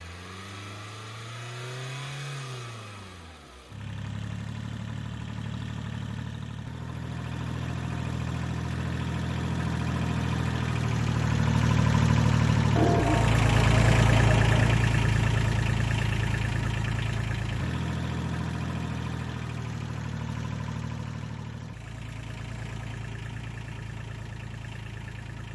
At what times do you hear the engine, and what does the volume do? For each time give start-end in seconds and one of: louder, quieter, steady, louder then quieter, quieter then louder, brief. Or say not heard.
0.0-25.4 louder then quieter.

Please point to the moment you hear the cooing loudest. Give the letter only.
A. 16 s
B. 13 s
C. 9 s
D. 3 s
B.